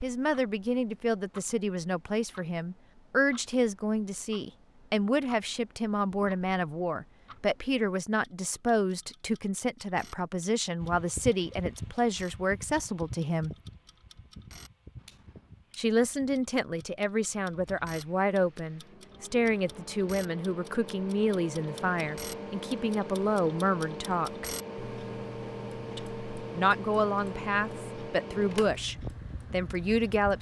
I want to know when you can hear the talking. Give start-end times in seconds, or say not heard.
0.0-13.6, 15.8-24.4, 25.9-30.3.